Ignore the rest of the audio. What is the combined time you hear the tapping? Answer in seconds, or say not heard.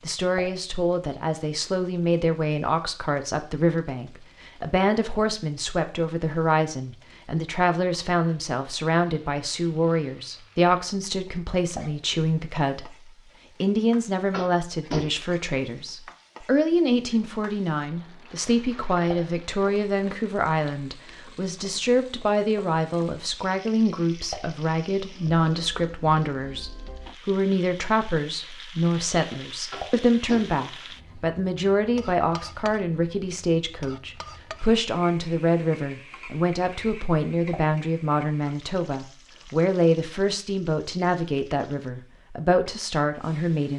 2 s.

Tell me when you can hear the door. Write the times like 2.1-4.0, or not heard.
not heard.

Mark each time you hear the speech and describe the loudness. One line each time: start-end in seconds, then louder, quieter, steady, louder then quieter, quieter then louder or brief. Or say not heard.
0.0-43.7 steady.